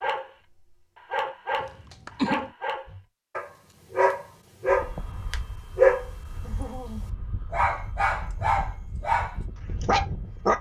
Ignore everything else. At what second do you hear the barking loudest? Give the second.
6 s.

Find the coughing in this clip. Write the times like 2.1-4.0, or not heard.
1.6-2.5.